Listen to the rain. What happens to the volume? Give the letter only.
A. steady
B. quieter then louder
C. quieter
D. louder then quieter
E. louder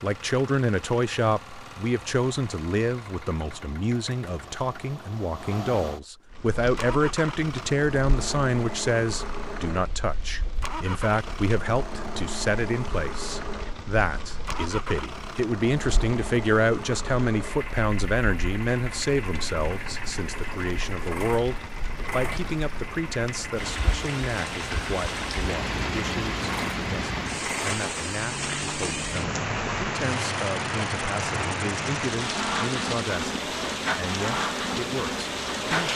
E.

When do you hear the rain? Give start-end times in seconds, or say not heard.
6.3-35.9.